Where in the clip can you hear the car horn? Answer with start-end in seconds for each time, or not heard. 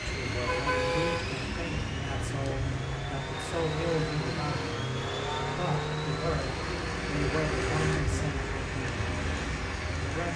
0.3-1.5.